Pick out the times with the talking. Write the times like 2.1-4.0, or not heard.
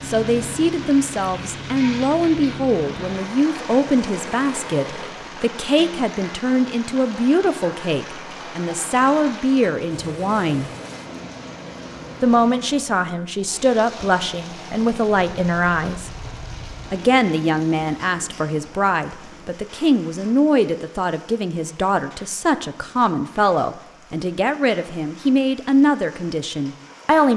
0.1-10.7, 12.2-16.1, 16.9-27.3.